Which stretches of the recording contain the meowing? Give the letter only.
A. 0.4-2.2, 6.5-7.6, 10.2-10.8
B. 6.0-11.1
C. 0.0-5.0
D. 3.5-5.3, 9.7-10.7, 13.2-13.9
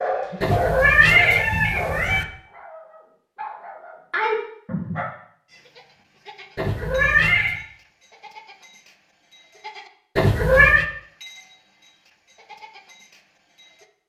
A.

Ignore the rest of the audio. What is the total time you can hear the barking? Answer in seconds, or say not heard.
5 s.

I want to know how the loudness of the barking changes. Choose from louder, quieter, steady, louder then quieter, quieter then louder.
quieter then louder.